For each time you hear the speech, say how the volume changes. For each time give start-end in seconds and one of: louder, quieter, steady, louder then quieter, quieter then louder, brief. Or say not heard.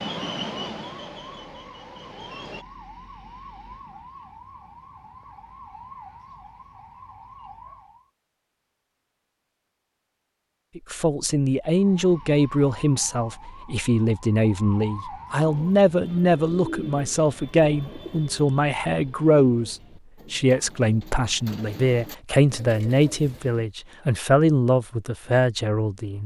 10.8-26.2 steady.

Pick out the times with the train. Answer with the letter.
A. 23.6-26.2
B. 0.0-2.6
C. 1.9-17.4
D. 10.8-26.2
B.